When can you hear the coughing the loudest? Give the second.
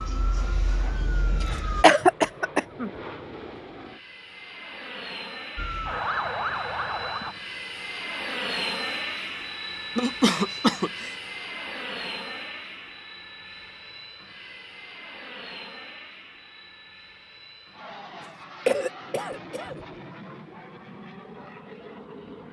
2 s.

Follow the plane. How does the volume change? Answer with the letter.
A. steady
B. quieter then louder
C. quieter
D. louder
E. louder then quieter
E.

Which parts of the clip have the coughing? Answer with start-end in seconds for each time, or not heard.
1.8-2.9, 9.9-11.1, 18.6-19.8.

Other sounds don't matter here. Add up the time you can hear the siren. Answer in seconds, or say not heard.
4 s.